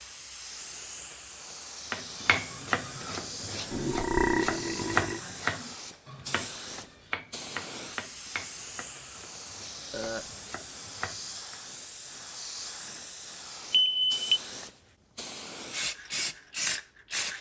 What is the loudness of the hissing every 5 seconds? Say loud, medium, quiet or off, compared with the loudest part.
medium, medium, medium, loud.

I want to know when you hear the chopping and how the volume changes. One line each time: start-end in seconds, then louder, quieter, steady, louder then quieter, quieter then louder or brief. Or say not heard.
1.9-11.6 quieter.